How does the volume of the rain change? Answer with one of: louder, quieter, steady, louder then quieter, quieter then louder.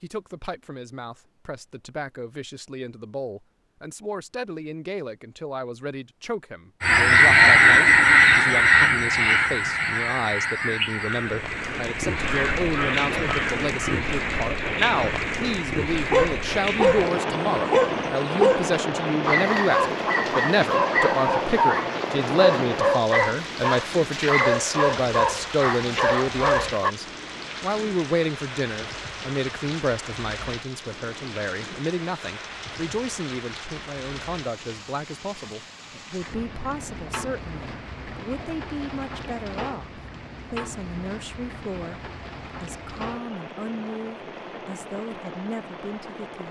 quieter.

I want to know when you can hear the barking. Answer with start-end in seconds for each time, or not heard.
16.1-26.9.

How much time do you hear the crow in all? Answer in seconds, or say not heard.
7 s.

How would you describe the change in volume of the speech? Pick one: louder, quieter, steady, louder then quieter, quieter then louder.
louder then quieter.